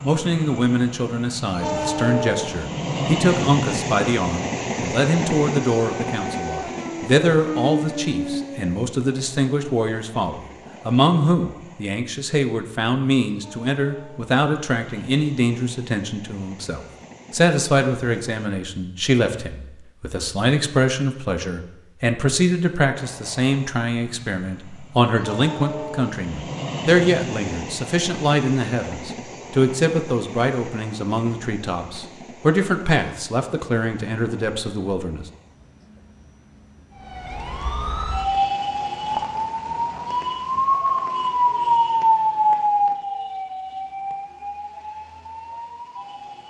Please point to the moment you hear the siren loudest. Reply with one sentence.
The loudest moment of the siren is at 42 seconds.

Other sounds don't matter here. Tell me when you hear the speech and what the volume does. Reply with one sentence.
The speech can be heard from 0.0 to 35.2 s, at a steady volume.